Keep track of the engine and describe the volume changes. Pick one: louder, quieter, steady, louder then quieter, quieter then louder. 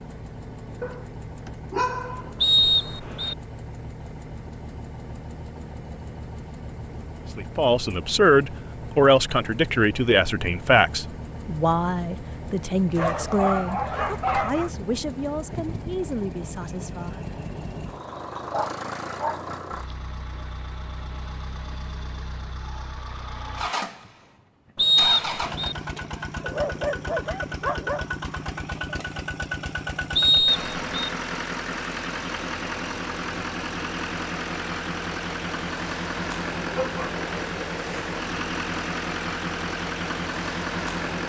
louder.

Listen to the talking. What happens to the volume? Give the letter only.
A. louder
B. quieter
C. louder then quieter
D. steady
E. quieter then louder
B.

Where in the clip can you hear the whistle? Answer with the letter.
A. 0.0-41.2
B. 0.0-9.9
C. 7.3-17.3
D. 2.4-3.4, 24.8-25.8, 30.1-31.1
D.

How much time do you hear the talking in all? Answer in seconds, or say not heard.
10 s.